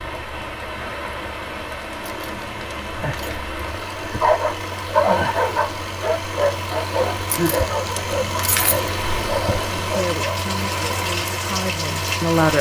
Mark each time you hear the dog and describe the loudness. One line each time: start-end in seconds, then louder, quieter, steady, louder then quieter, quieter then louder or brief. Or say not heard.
4.2-10.4 quieter.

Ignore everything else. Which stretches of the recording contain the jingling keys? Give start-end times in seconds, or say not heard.
2.0-3.5, 7.2-8.9.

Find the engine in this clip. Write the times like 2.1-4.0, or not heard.
0.0-12.5.